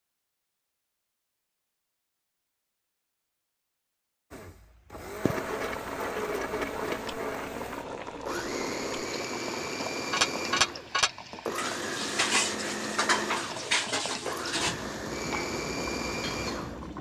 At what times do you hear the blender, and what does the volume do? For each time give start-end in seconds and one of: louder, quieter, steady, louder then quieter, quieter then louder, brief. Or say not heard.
4.3-16.9 steady.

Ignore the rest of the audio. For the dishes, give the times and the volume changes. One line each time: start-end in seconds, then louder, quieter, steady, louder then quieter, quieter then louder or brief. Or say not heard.
10.1-16.9 quieter.